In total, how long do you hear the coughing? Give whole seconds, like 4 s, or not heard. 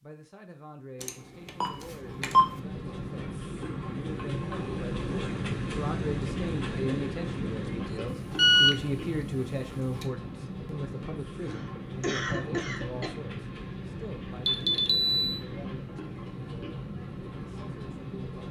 2 s.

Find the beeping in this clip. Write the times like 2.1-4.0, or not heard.
1.0-2.5, 8.3-8.8, 9.6-10.1, 14.4-15.4.